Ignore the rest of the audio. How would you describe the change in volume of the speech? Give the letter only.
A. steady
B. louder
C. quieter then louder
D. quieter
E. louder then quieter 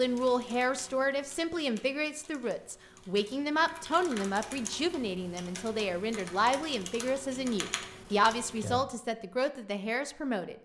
A.